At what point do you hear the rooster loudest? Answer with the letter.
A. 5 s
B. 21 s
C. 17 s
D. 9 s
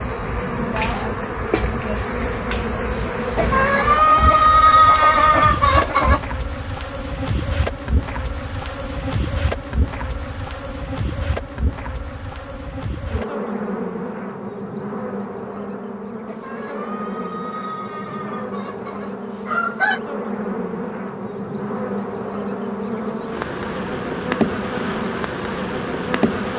A.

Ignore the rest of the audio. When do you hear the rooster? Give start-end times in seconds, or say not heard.
3.4-6.2, 16.3-20.0.